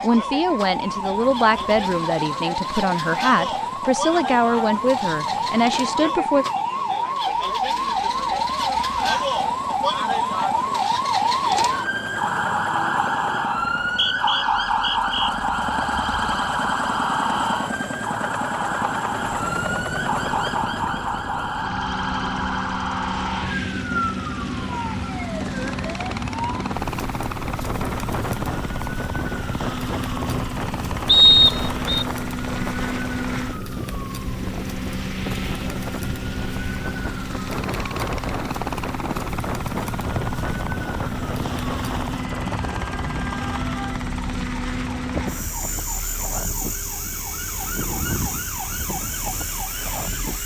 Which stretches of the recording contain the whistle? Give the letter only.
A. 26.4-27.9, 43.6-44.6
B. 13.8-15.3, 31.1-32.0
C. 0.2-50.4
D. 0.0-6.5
B.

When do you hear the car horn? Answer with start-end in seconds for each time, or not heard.
not heard.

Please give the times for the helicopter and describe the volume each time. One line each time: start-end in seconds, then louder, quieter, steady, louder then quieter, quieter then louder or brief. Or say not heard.
0.2-50.4 louder.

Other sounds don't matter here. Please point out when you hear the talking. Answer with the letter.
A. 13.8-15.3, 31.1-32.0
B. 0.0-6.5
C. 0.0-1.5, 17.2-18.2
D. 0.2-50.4
B.